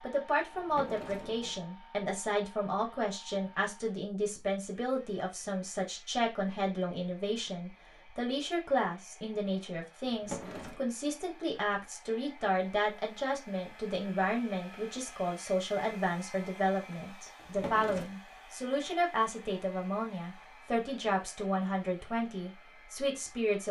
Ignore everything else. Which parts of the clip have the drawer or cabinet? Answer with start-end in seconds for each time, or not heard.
0.5-1.6, 10.1-10.8, 17.4-18.1.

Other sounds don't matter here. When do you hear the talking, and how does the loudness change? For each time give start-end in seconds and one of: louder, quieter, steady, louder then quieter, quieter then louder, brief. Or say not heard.
0.0-23.6 steady.